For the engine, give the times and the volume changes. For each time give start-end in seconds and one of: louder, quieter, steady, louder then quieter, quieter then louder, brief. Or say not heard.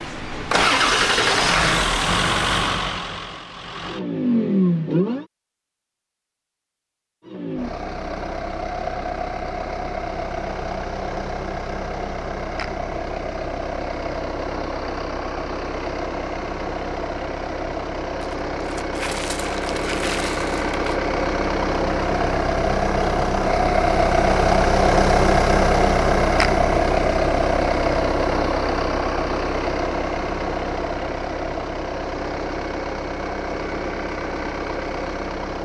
0.0-5.2 quieter then louder
7.2-35.6 louder then quieter.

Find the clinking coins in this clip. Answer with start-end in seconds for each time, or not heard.
18.2-20.9.